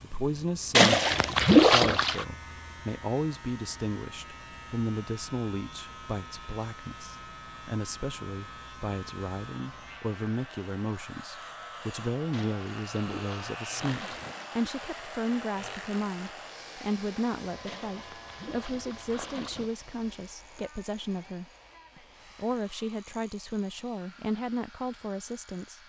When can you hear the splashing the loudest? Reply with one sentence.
The volume of the splashing peaks at 2 seconds.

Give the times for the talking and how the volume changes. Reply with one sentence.
The talking can be heard from 0.0 to 25.8 s, at a steady volume.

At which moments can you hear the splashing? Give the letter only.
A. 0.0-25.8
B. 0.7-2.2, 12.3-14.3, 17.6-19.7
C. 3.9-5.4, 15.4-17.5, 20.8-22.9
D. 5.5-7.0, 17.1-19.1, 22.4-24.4
B.